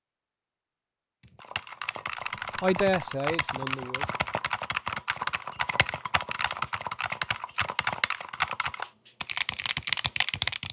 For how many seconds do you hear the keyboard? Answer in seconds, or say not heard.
9 s.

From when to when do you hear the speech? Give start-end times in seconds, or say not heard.
2.6-4.1.